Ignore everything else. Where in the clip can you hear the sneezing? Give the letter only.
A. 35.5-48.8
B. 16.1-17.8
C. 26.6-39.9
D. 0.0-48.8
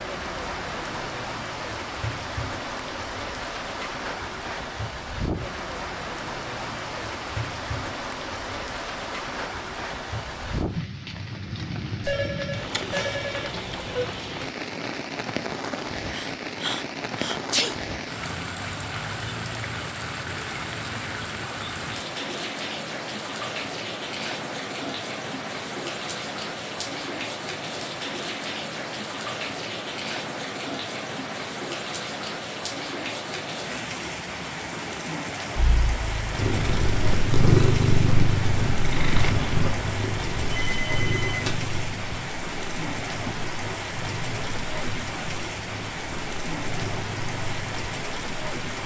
B.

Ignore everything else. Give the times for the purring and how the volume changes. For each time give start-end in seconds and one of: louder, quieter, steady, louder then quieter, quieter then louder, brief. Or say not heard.
35.5-48.8 quieter.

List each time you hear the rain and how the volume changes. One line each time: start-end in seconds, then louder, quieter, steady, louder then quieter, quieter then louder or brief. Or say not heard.
0.0-48.8 steady.